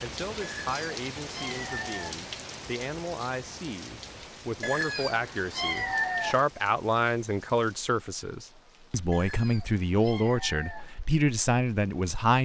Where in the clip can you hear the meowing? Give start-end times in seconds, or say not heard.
0.4-2.2, 4.6-6.5, 9.1-10.9.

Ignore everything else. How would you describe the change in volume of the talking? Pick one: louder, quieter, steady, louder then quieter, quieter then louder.
louder.